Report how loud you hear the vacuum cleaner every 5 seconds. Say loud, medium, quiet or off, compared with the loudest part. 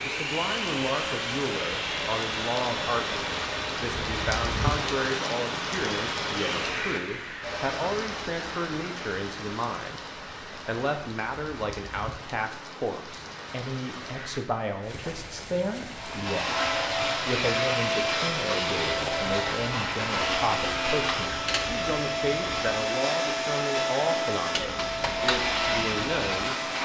medium, medium, off, loud, loud, loud.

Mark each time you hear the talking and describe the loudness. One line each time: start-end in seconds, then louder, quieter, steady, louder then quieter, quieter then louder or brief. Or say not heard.
0.0-10.0 steady
10.7-26.6 steady.